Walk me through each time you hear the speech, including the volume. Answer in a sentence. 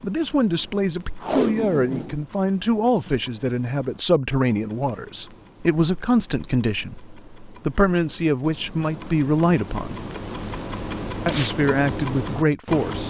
You can hear the speech from 0.0 to 10.0 s, at a steady volume; and briefly from 11.2 to 13.0 s.